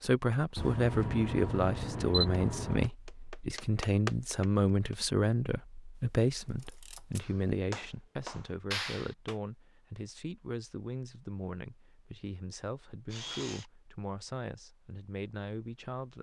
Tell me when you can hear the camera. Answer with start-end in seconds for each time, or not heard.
0.6-2.9, 6.3-7.2, 13.1-13.7.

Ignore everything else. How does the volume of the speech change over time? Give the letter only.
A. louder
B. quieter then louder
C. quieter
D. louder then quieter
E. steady
C.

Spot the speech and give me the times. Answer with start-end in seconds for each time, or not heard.
0.0-16.1.